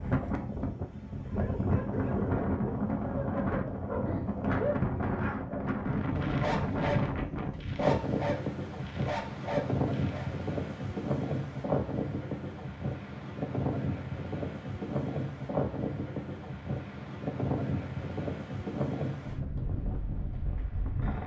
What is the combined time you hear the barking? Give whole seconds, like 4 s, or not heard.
9 s.